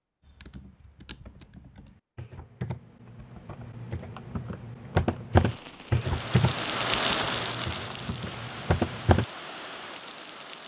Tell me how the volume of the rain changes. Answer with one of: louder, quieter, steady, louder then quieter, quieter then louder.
louder then quieter.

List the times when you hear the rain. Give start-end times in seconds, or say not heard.
5.3-10.6.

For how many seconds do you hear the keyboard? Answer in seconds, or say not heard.
9 s.